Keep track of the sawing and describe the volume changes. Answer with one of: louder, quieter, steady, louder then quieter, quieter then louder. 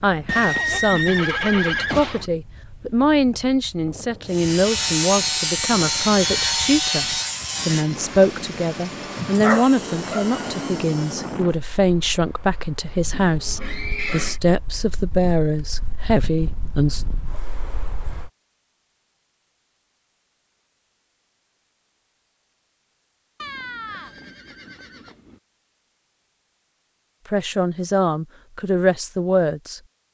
quieter.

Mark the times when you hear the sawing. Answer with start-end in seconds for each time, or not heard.
4.2-11.6.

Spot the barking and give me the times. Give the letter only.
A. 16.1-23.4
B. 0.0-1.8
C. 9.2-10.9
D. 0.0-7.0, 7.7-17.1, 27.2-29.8
C.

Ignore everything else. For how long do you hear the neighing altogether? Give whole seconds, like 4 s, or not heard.
5 s.